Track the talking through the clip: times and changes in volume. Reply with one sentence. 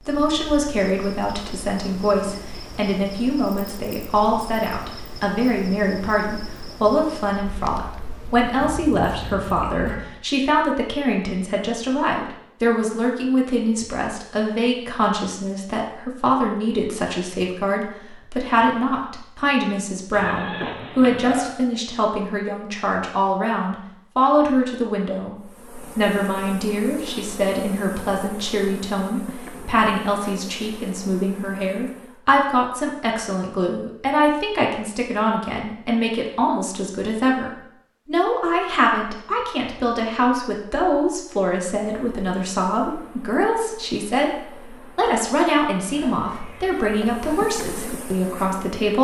You can hear the talking from 0.1 to 48.9 s, at a steady volume.